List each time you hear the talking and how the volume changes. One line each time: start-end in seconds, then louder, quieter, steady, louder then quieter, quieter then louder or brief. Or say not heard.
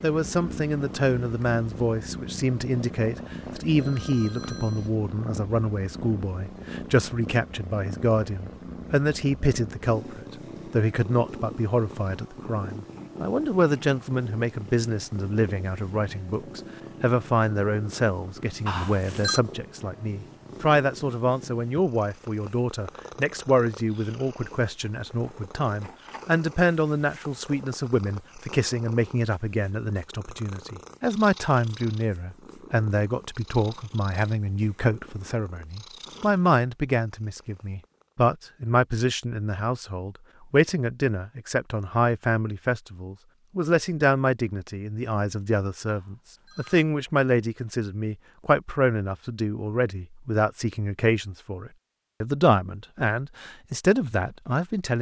0.0-54.9 steady.